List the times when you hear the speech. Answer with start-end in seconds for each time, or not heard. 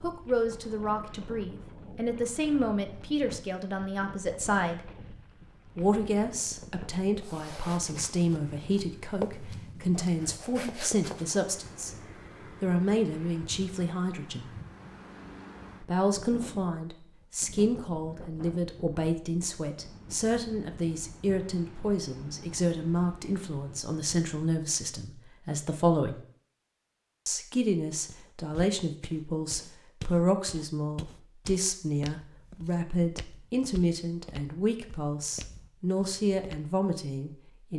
0.0-4.8, 5.8-11.9, 12.6-14.5, 15.8-26.1, 27.2-37.7.